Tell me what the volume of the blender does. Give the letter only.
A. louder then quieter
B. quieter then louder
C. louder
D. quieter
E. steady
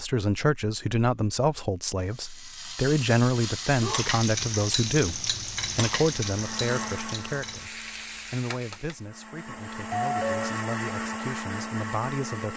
B.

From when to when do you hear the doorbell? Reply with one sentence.
The doorbell can be heard from 9.8 to 10.6 s.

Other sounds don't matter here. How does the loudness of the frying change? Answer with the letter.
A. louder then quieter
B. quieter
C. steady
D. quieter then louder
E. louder
A.